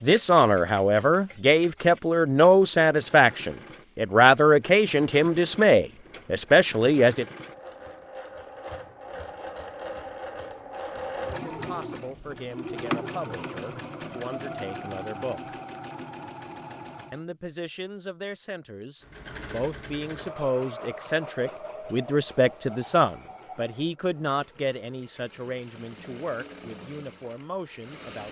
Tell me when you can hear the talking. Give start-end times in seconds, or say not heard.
0.0-7.2, 11.4-15.6, 17.1-28.2.